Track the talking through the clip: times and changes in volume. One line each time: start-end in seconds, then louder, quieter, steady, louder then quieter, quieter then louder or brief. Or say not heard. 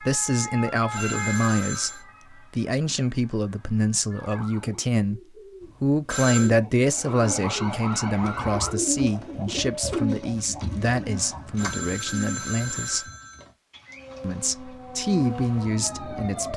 0.0-5.2 steady
5.8-13.1 quieter
14.2-16.5 brief.